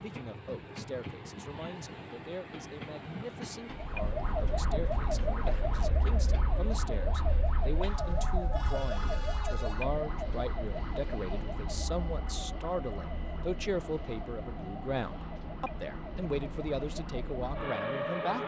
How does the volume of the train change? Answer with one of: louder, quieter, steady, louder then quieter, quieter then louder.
steady.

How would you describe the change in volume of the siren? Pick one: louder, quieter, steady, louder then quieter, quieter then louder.
quieter then louder.